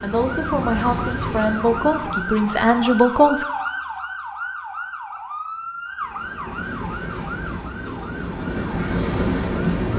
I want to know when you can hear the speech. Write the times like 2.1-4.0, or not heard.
0.0-3.5.